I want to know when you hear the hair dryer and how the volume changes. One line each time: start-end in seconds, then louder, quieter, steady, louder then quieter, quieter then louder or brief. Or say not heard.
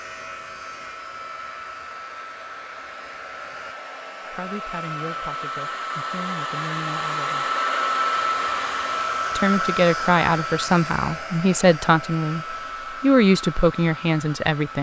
0.0-14.7 louder then quieter.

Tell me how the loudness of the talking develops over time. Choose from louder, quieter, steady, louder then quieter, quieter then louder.
louder.